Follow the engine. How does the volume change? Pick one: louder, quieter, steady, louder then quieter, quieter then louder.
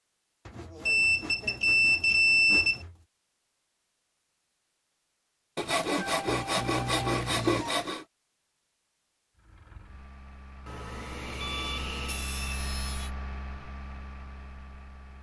louder then quieter.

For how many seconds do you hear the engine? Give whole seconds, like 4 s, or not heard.
6 s.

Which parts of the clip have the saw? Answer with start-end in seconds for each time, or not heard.
0.5-3.0, 5.5-8.1, 10.7-13.1.